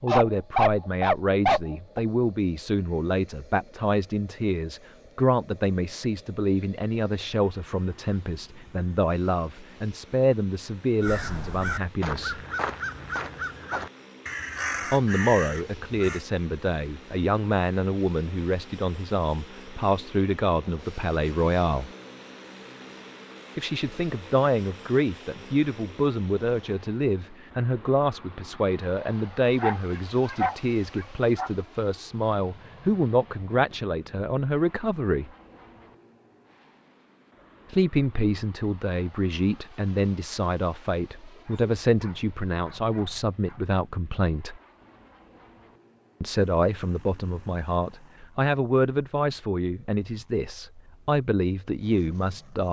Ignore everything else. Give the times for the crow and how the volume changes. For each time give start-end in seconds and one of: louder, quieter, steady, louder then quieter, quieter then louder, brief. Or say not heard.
11.0-16.2 steady.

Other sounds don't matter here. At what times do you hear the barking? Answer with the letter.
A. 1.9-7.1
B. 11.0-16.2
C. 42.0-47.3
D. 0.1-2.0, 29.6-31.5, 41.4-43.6
D.